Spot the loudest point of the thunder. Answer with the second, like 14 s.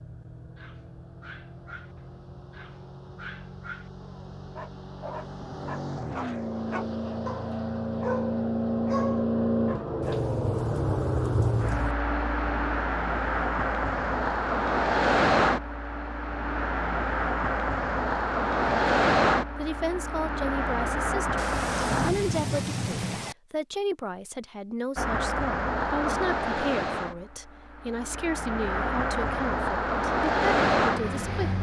22 s.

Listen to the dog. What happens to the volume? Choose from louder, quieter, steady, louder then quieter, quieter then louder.
louder.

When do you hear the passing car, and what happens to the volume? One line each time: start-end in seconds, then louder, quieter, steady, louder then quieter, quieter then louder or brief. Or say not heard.
0.0-22.1 louder
24.9-31.5 quieter then louder.